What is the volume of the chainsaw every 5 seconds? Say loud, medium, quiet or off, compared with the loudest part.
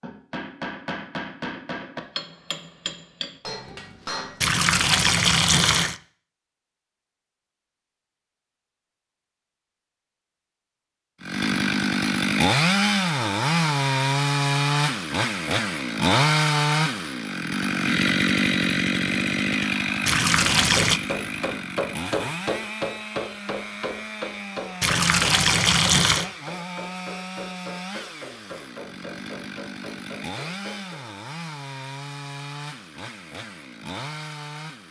off, off, loud, loud, medium, quiet, quiet.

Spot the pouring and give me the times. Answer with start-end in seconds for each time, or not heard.
4.4-6.0, 20.1-21.0, 24.8-26.3.